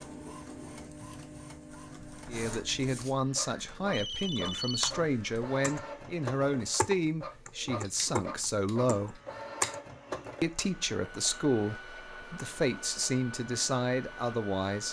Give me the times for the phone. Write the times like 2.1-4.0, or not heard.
3.9-5.0.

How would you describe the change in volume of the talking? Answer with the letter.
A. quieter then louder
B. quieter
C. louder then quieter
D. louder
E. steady
E.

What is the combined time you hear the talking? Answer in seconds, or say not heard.
11 s.